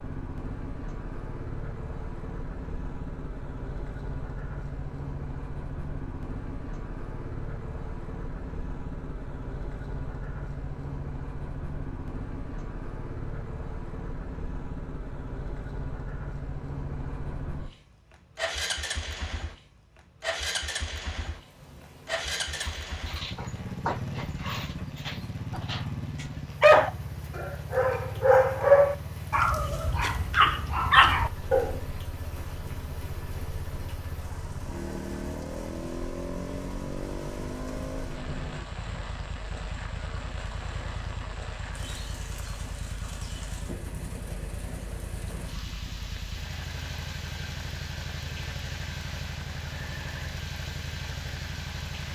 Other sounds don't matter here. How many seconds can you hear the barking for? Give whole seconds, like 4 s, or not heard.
9 s.